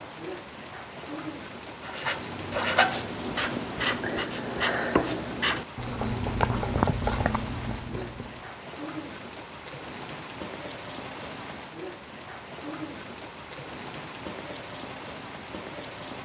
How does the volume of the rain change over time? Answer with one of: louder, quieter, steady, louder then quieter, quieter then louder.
steady.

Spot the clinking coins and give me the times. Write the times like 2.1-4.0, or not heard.
not heard.